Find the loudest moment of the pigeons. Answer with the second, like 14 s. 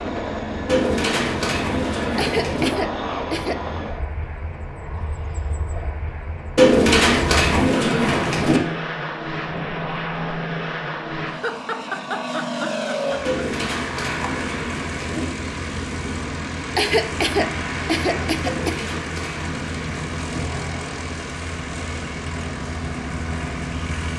7 s.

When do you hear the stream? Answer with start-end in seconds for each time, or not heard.
not heard.